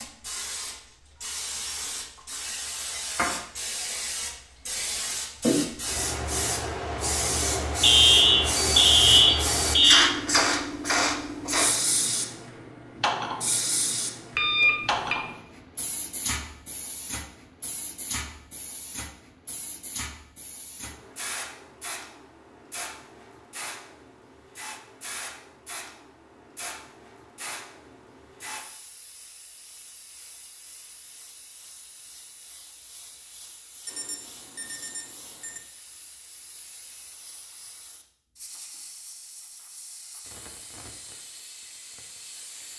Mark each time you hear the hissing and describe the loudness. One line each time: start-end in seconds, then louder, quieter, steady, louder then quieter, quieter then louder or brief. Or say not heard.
0.0-42.7 quieter.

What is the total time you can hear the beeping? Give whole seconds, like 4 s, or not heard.
5 s.